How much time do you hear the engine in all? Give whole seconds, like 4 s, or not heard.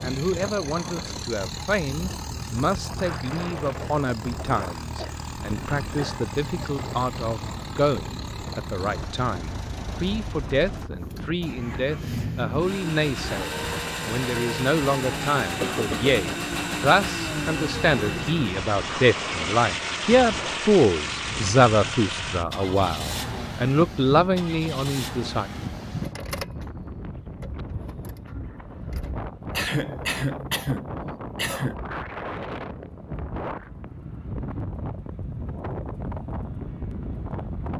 29 s.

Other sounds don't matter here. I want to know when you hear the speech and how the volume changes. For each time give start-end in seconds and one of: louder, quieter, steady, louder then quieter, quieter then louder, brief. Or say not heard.
0.0-25.5 louder.